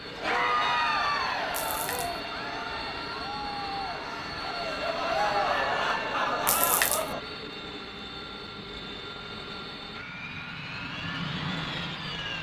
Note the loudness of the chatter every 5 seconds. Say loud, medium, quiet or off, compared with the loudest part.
loud, loud, off.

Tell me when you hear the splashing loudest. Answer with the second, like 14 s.
7 s.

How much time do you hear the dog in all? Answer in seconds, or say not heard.
not heard.